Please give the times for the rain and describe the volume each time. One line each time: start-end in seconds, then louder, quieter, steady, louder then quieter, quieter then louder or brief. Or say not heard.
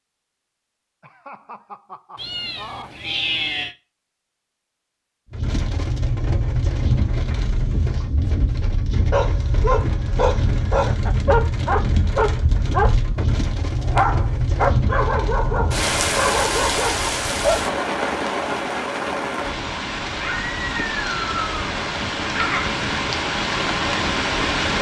5.3-24.7 steady.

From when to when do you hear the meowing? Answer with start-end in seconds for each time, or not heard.
2.1-3.8, 20.1-21.6.